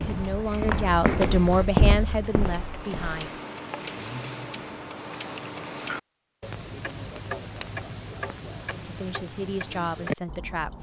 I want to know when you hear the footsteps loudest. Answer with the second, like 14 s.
2 s.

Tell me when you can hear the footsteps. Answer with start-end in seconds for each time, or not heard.
0.0-3.1.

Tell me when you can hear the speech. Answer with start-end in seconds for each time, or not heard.
0.0-3.3, 8.8-10.7.